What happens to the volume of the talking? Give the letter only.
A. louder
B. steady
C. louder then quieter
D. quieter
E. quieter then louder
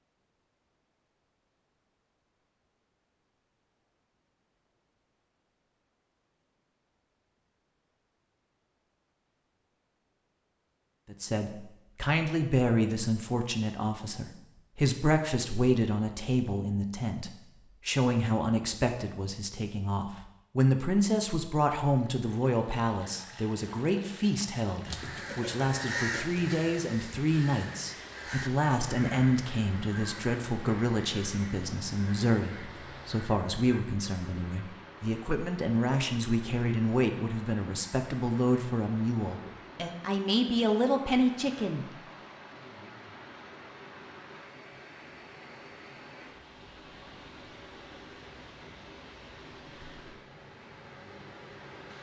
B.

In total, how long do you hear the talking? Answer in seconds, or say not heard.
31 s.